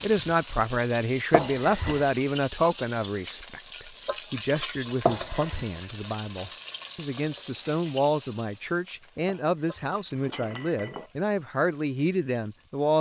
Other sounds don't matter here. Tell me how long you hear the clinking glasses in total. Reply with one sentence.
You can hear the clinking glasses for 3 seconds altogether.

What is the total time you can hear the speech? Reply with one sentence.
You can hear the speech for 13 seconds altogether.